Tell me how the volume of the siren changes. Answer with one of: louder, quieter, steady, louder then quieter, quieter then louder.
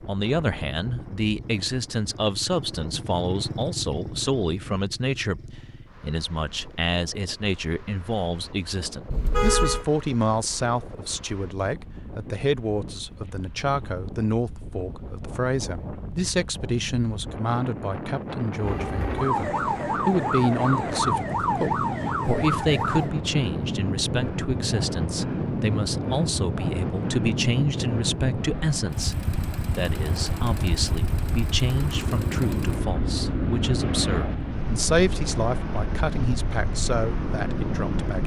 steady.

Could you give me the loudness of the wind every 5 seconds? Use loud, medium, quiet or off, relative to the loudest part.
quiet, quiet, quiet, medium, loud, loud, loud, loud.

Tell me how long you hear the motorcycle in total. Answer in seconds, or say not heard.
15 s.